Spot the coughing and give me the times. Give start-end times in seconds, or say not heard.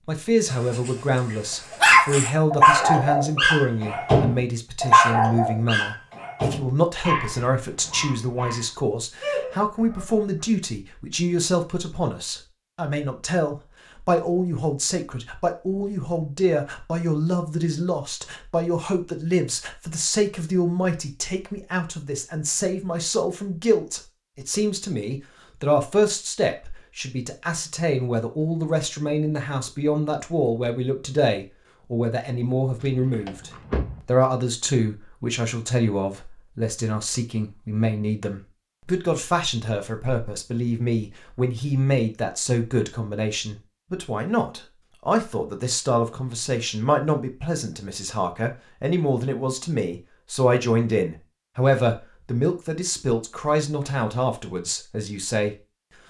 not heard.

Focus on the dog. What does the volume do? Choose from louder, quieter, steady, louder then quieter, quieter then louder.
quieter.